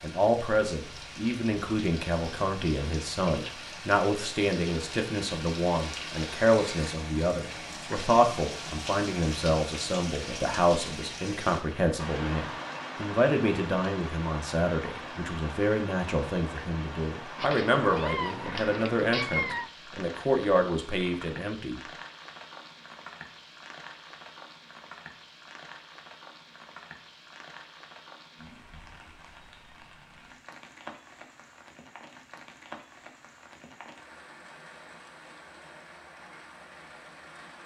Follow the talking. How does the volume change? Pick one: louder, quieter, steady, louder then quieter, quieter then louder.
steady.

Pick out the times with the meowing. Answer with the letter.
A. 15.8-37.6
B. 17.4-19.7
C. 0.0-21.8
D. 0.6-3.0
B.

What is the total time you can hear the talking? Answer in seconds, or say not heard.
22 s.